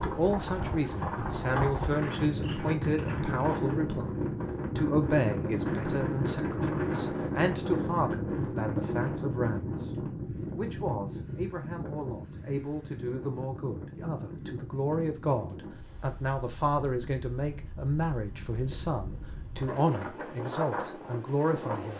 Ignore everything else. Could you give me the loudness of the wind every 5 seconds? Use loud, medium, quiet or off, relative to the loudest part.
loud, loud, medium, quiet, medium.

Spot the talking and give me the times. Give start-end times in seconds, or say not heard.
0.0-9.9, 10.6-21.9.